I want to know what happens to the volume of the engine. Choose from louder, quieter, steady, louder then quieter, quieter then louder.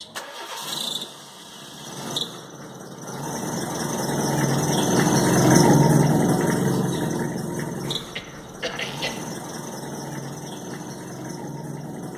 louder then quieter.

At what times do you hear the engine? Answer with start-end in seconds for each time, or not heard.
0.0-12.1.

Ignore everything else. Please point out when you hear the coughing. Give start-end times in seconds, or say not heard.
7.8-9.2.